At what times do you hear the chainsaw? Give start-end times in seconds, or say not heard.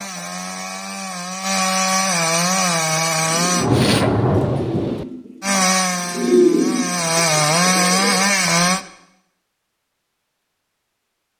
0.0-3.7, 5.4-8.8.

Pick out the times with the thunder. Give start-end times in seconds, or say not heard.
3.5-5.0.